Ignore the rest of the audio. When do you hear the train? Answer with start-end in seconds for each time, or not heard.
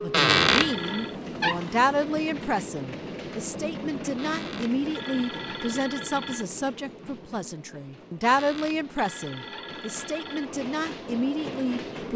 0.0-12.1.